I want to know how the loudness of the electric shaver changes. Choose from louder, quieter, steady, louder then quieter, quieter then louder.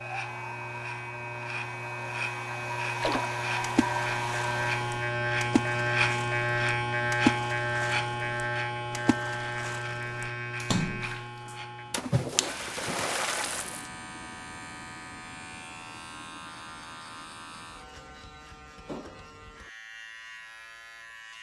louder then quieter.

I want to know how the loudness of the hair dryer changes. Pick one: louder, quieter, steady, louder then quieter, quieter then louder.
louder.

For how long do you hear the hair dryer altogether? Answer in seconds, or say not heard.
5 s.